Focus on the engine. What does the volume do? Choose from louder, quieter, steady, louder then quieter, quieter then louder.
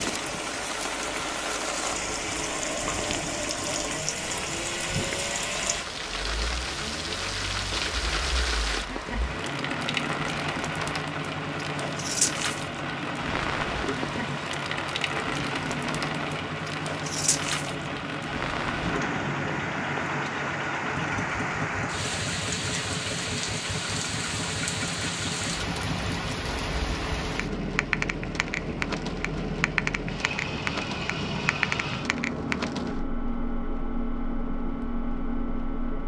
steady.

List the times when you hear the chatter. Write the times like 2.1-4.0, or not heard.
not heard.